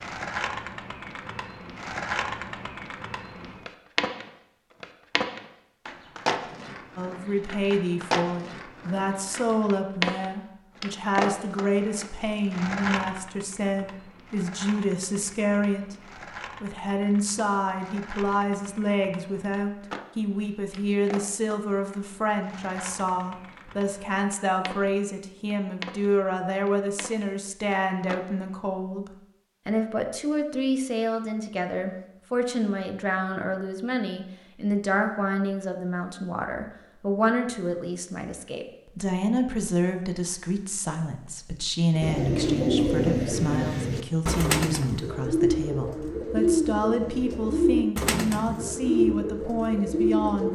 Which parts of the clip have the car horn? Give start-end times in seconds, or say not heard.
not heard.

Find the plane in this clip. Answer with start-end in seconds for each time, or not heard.
not heard.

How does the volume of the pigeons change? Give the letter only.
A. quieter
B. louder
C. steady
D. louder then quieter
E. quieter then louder
C.